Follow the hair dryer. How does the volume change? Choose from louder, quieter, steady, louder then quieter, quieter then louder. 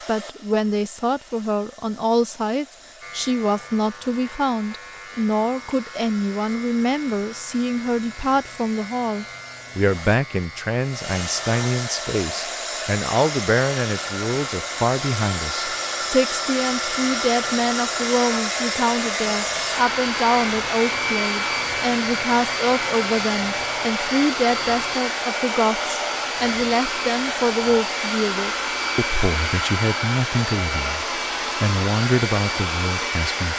louder.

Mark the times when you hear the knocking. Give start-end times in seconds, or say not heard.
not heard.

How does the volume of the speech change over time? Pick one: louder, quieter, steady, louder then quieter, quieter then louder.
steady.